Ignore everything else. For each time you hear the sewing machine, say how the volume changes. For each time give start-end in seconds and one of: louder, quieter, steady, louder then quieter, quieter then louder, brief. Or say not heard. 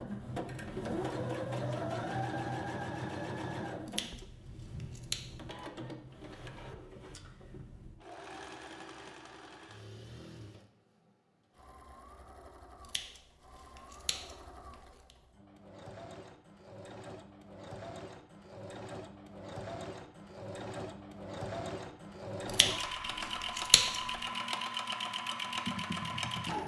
0.0-26.6 quieter then louder.